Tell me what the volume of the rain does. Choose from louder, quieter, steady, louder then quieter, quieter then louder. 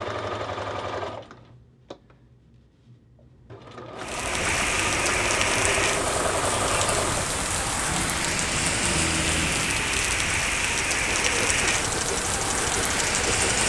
steady.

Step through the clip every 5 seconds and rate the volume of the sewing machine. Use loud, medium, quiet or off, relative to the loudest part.
medium, loud, loud.